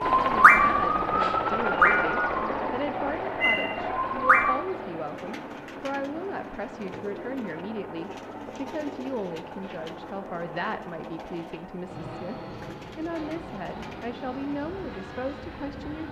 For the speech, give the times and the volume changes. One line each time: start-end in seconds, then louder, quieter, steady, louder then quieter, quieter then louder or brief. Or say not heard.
0.0-16.0 steady.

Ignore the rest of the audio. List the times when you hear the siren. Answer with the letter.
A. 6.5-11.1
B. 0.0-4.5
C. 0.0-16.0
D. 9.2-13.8
B.